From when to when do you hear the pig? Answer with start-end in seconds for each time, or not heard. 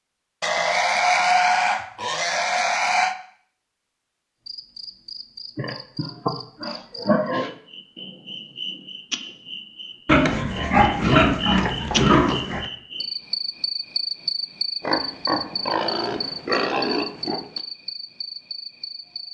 0.4-3.1, 5.5-7.5, 10.1-12.7, 14.8-17.6.